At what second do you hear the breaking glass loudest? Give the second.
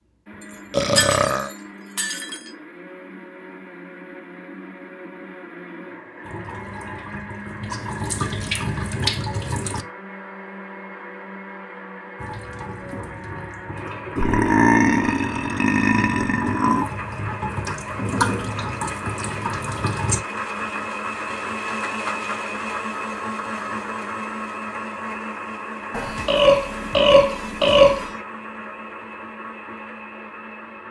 1 s.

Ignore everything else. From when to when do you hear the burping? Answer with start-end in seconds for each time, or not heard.
0.7-1.5, 14.2-16.9, 25.9-28.1.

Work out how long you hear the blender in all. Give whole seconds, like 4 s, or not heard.
31 s.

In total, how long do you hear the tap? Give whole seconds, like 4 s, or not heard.
12 s.